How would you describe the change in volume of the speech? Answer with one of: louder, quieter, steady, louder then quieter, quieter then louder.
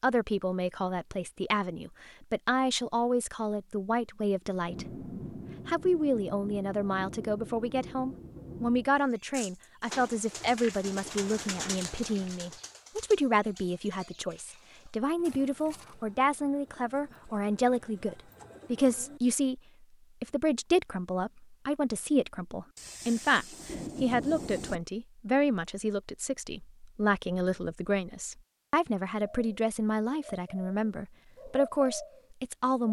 steady.